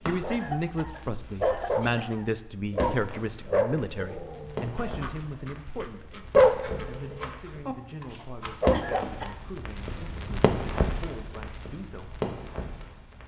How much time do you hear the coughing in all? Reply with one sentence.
You can hear the coughing for 3 seconds altogether.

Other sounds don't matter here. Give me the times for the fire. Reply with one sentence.
You can hear the fire from 0.0 to 13.2 s.